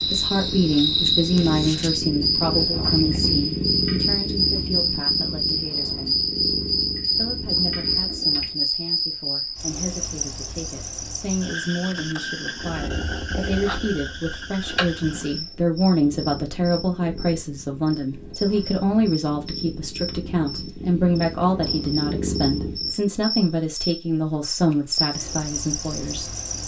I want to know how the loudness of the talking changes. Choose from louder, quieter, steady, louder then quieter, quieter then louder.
quieter then louder.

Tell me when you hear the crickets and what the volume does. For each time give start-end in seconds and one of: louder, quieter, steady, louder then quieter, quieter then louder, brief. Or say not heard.
0.0-26.6 quieter then louder.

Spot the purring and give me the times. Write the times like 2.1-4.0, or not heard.
0.0-8.6, 12.6-22.9.